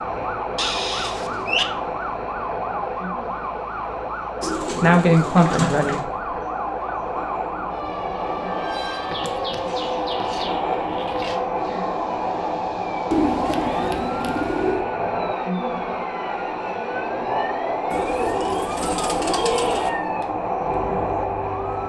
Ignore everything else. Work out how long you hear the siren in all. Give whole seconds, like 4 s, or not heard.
22 s.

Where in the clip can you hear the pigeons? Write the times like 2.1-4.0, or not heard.
0.6-1.6, 4.4-6.0, 9.1-11.3, 13.1-14.8, 17.9-19.9.